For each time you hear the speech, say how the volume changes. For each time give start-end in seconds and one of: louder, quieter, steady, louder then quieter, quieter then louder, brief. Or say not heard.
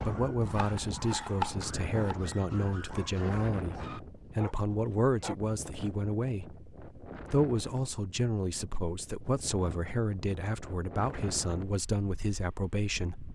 0.0-13.2 steady.